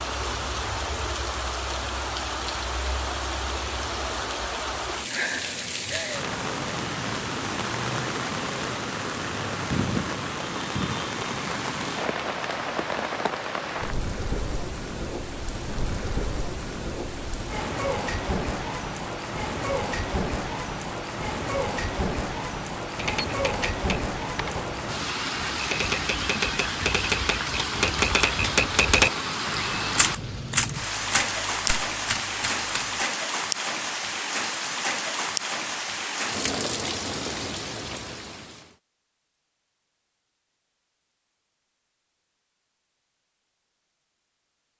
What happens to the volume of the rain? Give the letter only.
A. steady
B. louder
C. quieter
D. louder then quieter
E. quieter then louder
A.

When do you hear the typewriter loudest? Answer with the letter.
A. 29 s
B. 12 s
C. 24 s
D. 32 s
A.